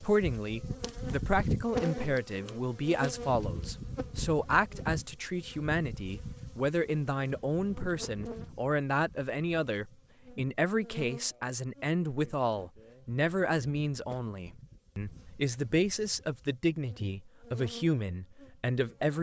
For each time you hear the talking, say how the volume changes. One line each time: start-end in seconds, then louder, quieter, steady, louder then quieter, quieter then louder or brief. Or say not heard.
0.0-19.1 steady.